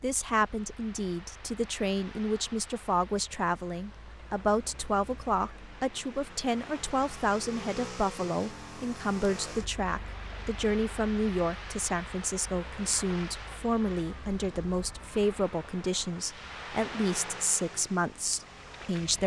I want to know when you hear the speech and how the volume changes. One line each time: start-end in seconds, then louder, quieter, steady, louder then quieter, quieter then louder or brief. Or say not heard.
0.0-19.2 steady.